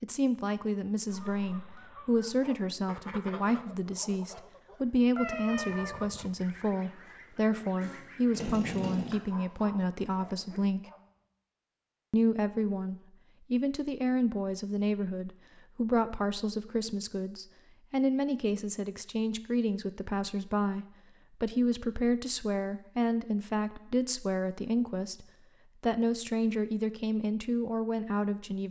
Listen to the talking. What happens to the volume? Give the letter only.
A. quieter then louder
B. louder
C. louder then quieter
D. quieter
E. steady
E.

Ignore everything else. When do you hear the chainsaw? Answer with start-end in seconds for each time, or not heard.
7.8-9.2.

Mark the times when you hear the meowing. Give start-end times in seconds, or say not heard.
5.2-6.0.